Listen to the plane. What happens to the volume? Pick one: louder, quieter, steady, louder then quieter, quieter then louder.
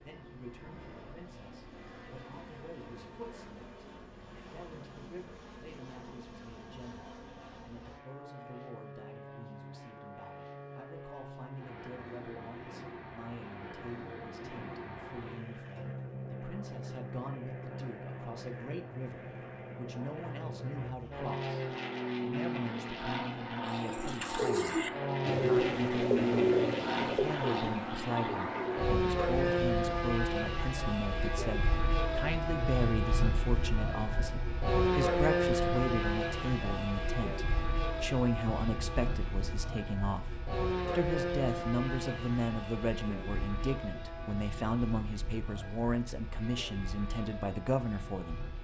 louder then quieter.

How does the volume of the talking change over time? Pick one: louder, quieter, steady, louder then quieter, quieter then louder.
louder.